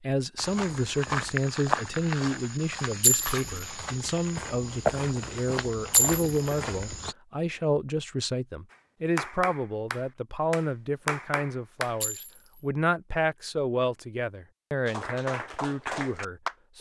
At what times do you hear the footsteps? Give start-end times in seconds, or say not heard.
0.3-7.2.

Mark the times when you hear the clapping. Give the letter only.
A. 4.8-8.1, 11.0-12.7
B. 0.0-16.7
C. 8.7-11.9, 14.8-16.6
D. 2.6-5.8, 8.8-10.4
C.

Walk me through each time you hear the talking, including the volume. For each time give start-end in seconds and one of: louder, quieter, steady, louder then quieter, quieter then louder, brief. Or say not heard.
0.0-16.7 steady.